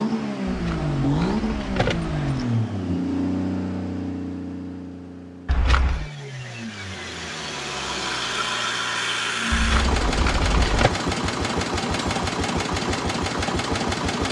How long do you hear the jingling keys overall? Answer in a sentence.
You can hear the jingling keys for 4 seconds altogether.